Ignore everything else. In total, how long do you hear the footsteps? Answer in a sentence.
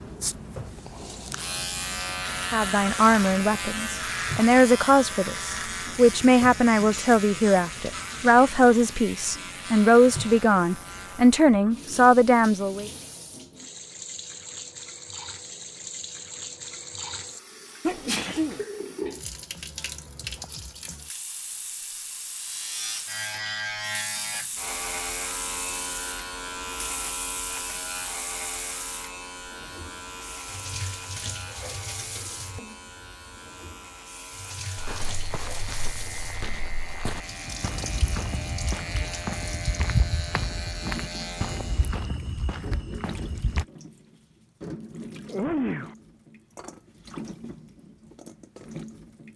You can hear the footsteps for 9 seconds altogether.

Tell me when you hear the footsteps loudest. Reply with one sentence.
The loudest moment of the footsteps is at 40 seconds.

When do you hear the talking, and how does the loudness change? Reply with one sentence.
You can hear the talking from 2.5 to 12.9 s, at a steady volume.